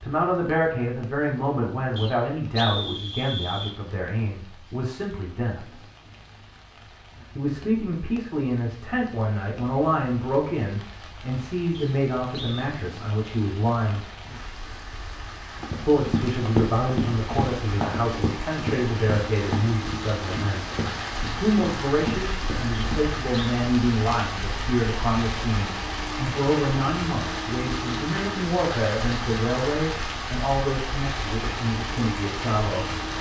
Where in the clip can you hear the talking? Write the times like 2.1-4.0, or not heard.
0.0-5.8, 7.3-14.1, 15.8-20.6, 21.4-32.9.